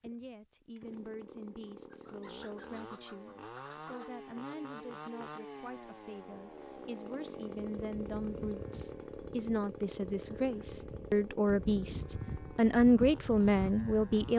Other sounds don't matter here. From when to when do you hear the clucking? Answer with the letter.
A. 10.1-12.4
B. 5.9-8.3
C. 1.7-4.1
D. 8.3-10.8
C.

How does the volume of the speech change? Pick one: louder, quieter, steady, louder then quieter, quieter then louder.
louder.